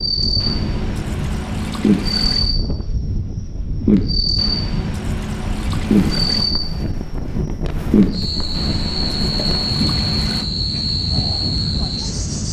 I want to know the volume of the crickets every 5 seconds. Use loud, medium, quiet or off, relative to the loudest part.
loud, loud, medium.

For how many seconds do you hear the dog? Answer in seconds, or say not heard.
not heard.